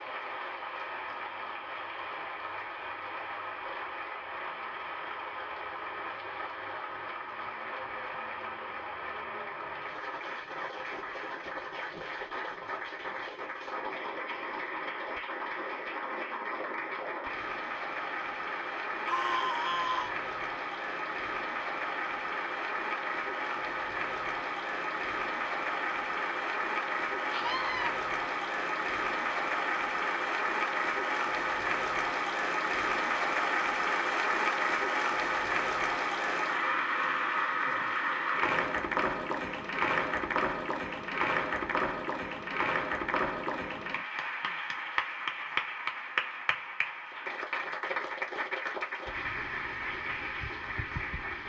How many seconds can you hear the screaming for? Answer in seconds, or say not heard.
2 s.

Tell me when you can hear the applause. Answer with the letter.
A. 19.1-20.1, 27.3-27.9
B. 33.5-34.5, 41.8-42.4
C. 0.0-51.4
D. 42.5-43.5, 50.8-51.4
C.